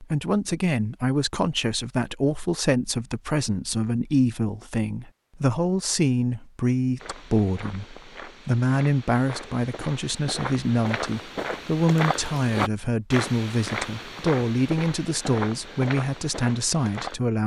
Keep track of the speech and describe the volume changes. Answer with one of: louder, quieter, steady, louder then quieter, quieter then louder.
steady.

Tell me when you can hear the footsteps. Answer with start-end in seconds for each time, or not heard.
7.0-17.2.